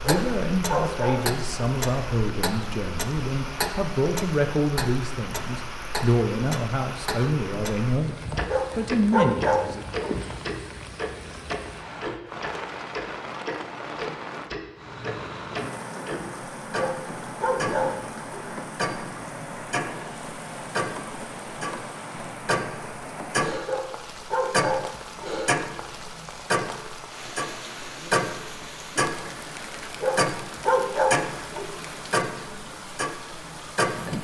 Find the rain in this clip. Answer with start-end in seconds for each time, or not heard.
0.0-34.1.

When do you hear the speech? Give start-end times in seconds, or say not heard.
0.0-9.8.